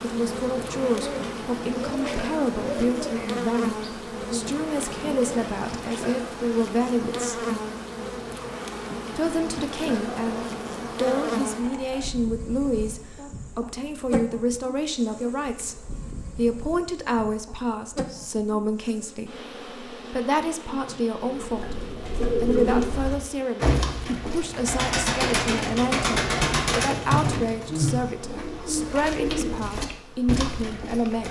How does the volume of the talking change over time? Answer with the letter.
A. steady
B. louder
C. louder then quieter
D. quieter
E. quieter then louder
A.